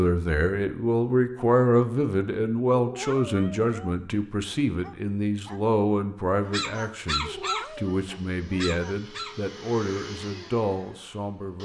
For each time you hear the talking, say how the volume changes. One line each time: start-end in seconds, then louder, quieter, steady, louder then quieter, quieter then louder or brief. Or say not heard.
0.0-11.5 quieter.